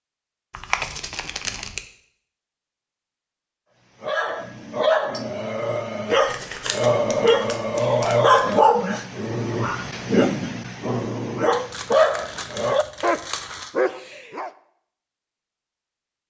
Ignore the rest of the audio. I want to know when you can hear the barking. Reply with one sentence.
You can hear the barking from 4.0 to 14.5 s.